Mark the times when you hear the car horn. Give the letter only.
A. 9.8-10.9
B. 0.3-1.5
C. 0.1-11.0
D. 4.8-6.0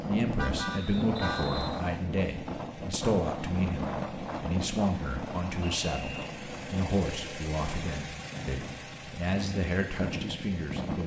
B.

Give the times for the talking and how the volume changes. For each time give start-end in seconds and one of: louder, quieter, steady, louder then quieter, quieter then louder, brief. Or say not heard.
0.1-11.0 steady.